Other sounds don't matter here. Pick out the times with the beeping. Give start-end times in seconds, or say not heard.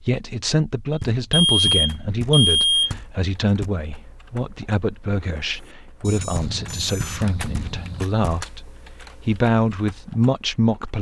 1.3-3.0, 6.0-8.1.